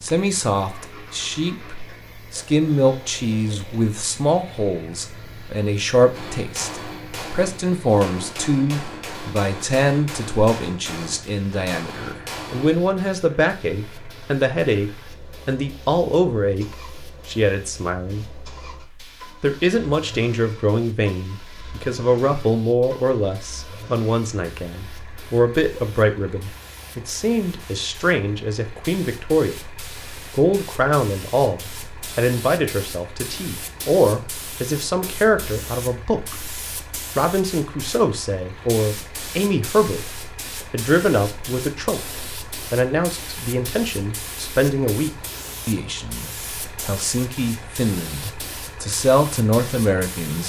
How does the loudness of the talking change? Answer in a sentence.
The loudness of the talking stays about the same.